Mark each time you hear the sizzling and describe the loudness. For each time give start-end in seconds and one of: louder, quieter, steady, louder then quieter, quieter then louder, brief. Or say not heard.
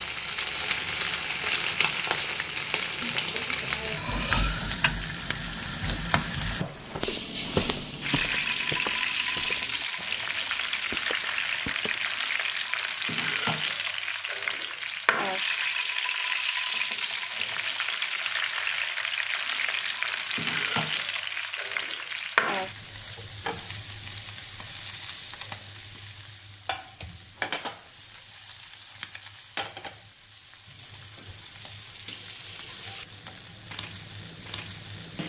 0.0-35.2 quieter.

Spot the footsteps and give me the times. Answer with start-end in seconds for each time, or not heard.
6.5-12.2.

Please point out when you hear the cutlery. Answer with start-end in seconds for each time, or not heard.
4.0-4.8.